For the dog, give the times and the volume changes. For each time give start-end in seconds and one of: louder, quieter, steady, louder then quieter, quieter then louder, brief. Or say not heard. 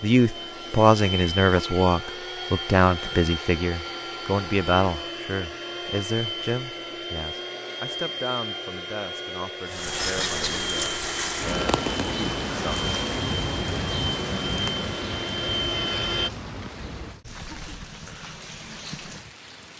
not heard.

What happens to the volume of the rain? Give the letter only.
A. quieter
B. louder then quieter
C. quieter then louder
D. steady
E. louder
A.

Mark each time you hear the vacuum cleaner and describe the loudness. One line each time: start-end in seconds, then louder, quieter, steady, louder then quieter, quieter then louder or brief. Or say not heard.
0.0-16.3 steady.